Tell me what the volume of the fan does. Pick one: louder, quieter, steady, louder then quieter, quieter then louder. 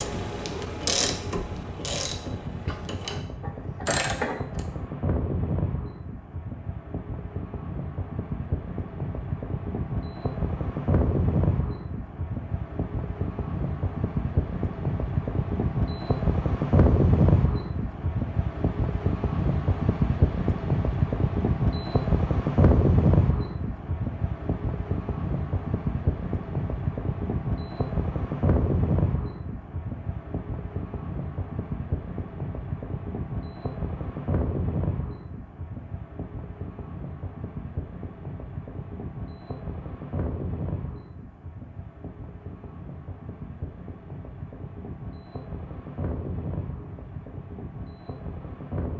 louder then quieter.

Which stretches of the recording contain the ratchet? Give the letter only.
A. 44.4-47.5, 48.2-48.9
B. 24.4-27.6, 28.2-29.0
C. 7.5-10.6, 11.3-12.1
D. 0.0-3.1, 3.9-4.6
D.